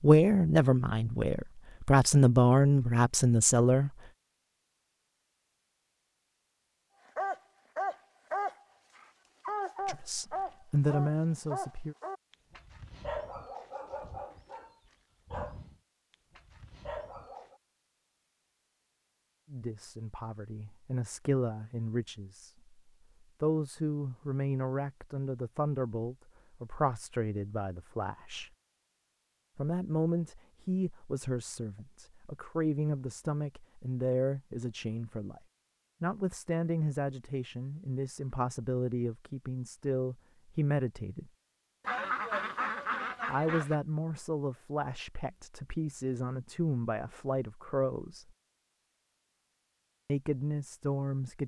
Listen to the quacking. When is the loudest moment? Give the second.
42 s.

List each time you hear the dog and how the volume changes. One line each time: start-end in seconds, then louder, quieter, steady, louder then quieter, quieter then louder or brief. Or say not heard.
7.2-17.6 quieter.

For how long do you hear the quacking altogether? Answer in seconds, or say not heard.
2 s.